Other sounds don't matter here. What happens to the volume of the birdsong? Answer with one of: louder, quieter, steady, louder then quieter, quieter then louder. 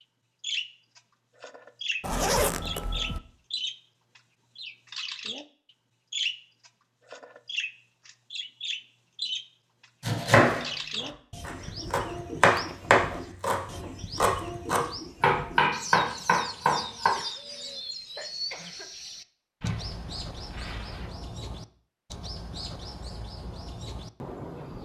quieter.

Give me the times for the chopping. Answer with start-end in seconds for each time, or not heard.
10.0-17.1.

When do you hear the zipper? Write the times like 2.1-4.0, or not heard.
2.0-3.2, 12.5-13.2, 19.6-21.1.